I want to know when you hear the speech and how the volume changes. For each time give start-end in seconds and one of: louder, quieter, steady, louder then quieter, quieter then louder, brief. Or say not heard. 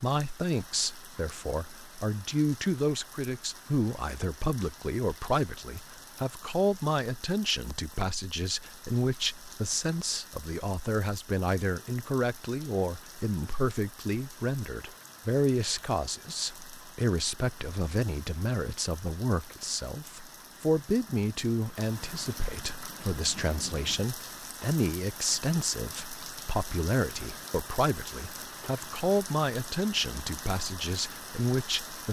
0.0-32.0 steady.